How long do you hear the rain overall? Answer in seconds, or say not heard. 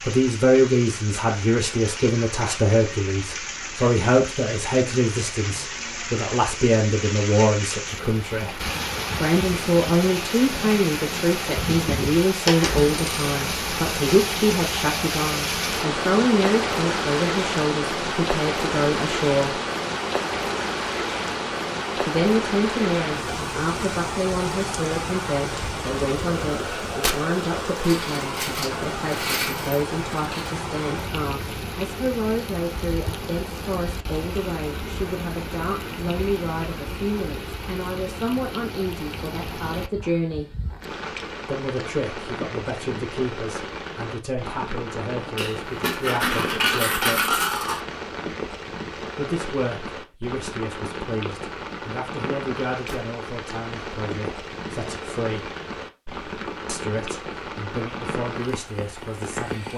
60 s.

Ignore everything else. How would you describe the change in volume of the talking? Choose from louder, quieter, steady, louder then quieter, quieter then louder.
quieter.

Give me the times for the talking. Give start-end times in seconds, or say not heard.
0.0-19.6, 21.9-40.5, 41.4-47.4, 49.1-55.5, 56.6-59.7.